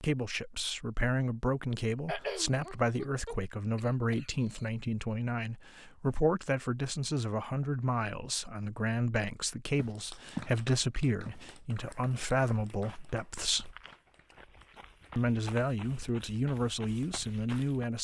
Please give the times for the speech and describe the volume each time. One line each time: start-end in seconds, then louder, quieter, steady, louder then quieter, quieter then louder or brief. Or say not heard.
0.0-13.7 steady
15.2-17.9 brief.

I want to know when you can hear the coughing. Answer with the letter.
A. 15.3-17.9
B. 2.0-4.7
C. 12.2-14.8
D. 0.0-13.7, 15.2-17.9
B.